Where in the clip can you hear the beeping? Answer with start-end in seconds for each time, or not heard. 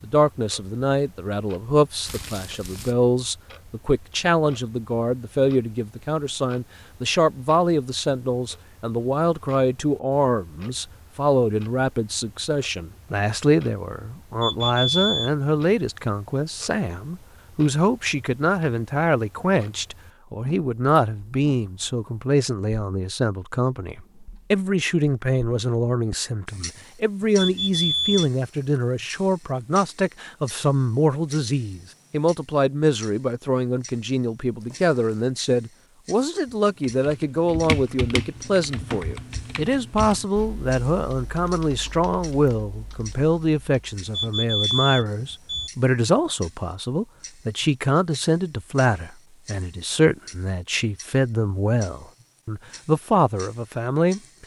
14.4-15.3, 27.4-28.3, 44.1-45.7.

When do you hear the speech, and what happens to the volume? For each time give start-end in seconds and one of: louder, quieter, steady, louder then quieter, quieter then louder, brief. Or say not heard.
0.0-54.2 steady.